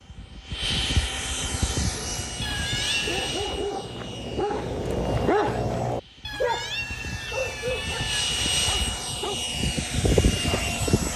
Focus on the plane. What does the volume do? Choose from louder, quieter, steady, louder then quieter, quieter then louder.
quieter then louder.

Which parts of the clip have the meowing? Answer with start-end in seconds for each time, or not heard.
2.4-3.4, 6.2-8.2.